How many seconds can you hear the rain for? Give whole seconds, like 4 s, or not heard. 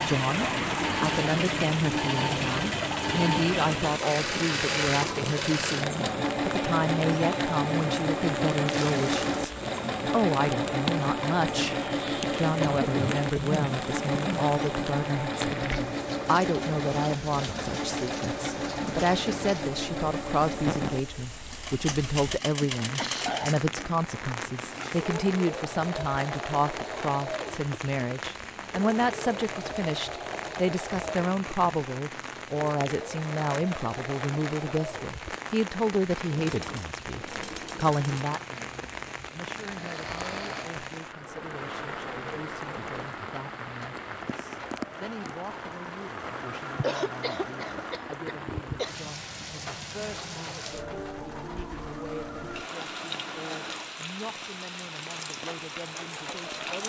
57 s.